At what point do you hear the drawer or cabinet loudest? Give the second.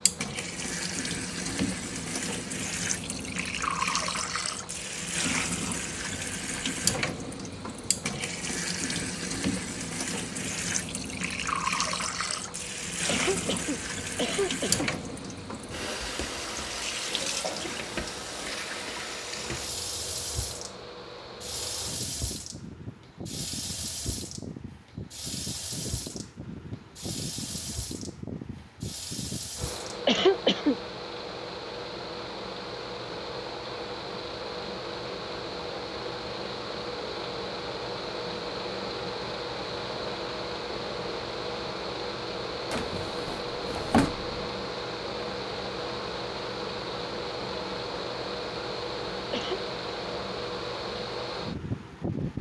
44 s.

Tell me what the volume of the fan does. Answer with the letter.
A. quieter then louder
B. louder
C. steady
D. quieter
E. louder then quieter
B.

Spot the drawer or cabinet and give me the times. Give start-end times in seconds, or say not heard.
42.7-44.5.